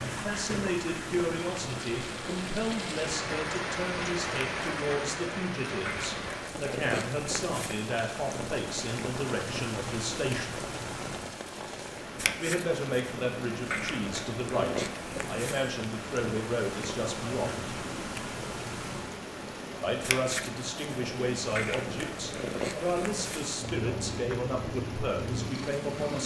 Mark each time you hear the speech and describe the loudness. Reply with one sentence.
You can hear the speech from 0.1 to 10.7 s, at a steady volume; from 12.4 to 17.7 s, at a steady volume; and from 19.8 to 26.2 s, at a steady volume.